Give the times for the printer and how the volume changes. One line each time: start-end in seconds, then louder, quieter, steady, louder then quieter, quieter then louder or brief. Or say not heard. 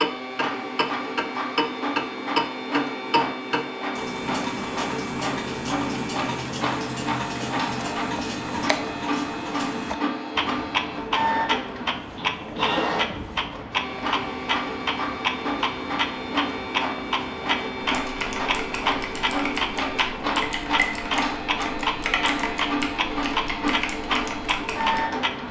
0.0-25.4 steady.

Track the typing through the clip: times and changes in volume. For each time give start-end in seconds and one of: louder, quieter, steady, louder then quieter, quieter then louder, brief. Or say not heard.
17.8-25.1 steady.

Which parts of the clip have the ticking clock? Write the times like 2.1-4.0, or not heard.
0.0-25.4.